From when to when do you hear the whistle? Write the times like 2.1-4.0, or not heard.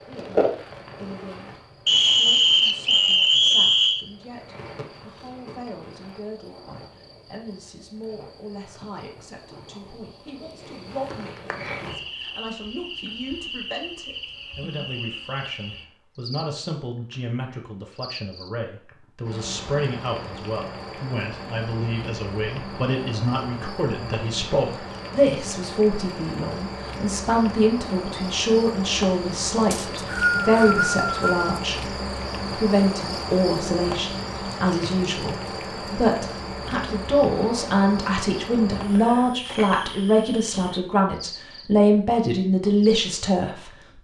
1.9-4.0, 29.7-31.6.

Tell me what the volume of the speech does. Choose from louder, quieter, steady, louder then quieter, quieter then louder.
louder.